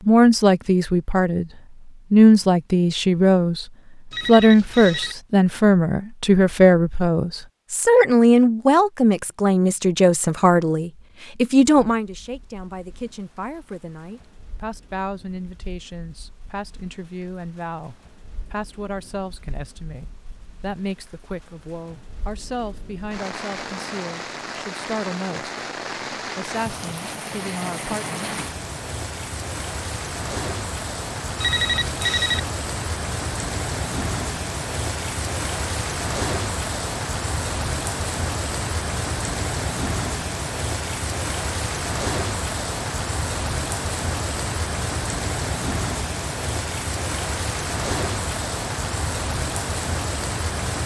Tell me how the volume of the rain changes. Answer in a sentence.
The loudness of the rain goes up.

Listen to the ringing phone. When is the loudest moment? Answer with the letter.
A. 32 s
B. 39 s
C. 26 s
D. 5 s
A.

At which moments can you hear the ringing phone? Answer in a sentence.
You can hear the ringing phone from 4.1 to 5.2 s and from 31.4 to 32.4 s.